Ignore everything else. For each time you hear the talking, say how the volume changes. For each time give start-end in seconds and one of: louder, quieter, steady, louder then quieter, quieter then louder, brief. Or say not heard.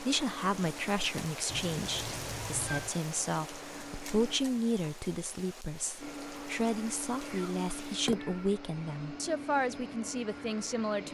0.0-11.0 steady.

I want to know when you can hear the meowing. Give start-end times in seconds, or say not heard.
1.4-3.0, 7.2-8.5.